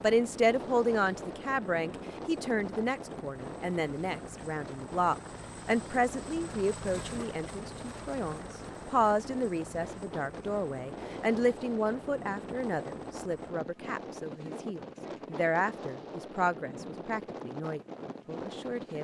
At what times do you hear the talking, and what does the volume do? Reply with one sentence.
The talking can be heard from 0.0 to 19.0 s, at a steady volume.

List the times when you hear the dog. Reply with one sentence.
You can't hear the dog here.